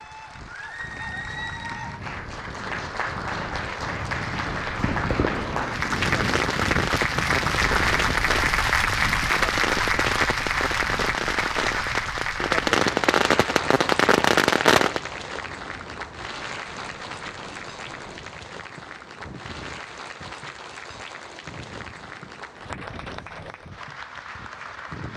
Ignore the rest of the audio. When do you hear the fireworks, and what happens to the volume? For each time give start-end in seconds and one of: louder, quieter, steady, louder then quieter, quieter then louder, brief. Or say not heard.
4.5-15.0 louder.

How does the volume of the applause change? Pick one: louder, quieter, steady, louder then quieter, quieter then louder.
louder then quieter.